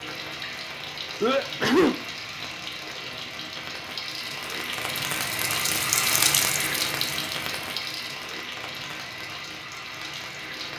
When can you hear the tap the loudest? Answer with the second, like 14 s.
6 s.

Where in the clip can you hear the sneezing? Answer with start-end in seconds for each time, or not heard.
1.2-1.9.